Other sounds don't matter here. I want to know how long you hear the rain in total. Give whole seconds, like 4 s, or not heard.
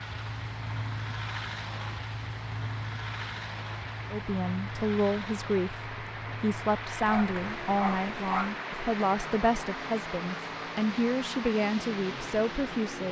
13 s.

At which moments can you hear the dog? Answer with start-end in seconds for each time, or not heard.
7.0-8.5.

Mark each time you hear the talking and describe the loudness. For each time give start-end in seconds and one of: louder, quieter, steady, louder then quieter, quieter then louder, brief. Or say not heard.
4.1-13.0 steady.